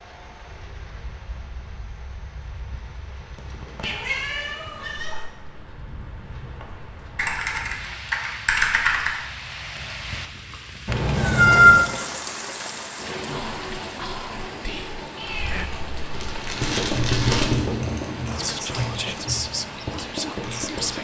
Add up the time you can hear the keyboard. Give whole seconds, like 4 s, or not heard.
8 s.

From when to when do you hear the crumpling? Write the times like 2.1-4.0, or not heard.
3.4-4.0, 16.1-17.6.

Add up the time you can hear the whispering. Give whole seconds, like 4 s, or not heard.
5 s.